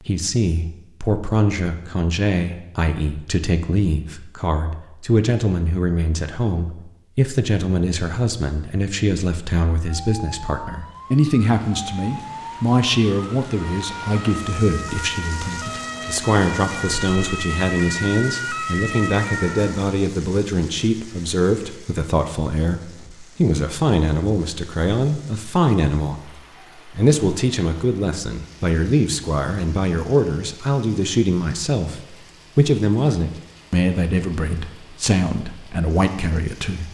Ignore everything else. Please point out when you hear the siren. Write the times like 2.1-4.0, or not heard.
9.8-19.9.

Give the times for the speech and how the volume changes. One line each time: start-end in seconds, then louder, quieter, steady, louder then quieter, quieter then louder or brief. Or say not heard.
0.0-36.8 steady.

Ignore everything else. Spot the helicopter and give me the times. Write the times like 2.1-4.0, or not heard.
not heard.